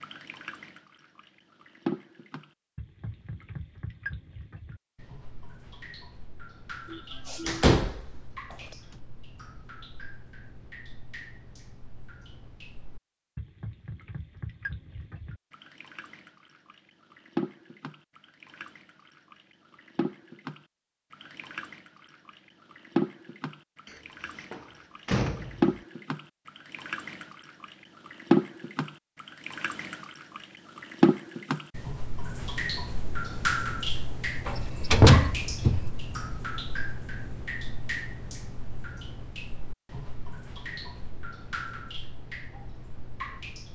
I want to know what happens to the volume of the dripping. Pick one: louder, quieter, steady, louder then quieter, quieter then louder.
louder then quieter.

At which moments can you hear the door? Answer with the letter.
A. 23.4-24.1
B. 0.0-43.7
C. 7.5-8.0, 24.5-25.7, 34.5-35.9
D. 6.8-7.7
C.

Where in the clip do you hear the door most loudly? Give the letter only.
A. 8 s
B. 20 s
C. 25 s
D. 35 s
D.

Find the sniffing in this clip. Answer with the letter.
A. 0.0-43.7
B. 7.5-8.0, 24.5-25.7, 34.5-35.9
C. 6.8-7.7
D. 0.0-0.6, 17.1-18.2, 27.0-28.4
C.